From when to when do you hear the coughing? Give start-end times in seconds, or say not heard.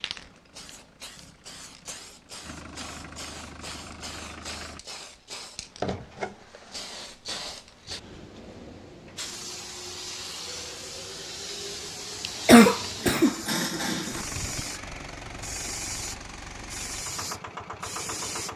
12.2-14.2.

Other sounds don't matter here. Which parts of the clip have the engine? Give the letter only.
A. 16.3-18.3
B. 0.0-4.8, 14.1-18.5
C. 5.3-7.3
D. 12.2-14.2
B.